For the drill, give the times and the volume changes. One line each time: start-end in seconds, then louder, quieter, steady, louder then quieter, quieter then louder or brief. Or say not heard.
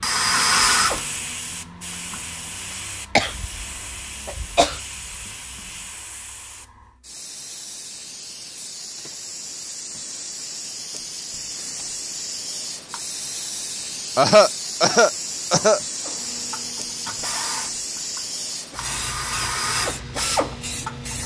0.0-2.8 brief
16.1-21.2 louder.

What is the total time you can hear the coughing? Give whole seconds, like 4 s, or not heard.
3 s.